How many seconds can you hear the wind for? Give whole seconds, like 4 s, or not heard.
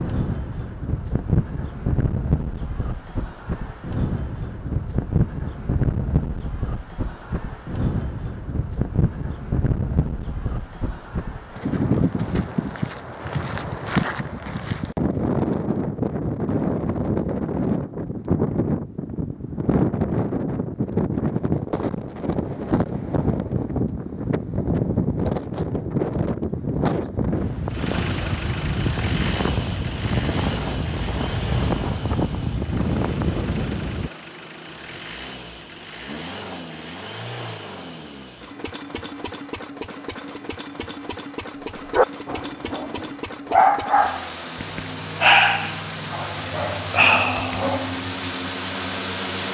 34 s.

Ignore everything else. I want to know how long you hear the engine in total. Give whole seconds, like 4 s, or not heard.
22 s.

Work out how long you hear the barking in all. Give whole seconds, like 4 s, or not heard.
6 s.